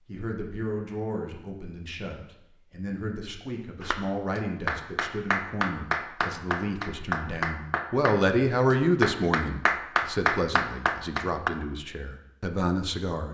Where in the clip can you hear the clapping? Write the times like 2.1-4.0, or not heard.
3.8-11.5.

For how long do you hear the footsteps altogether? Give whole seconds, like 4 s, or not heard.
not heard.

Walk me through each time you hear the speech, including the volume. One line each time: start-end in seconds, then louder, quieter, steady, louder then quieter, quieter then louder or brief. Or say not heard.
0.1-13.2 louder then quieter.